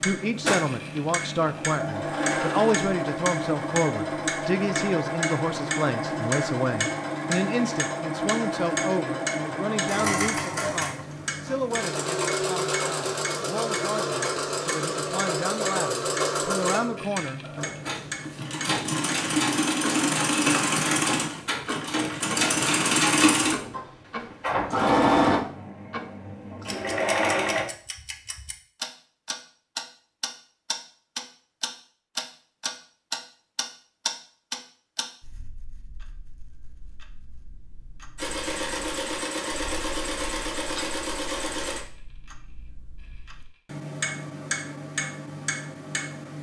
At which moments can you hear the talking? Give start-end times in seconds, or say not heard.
0.1-17.6.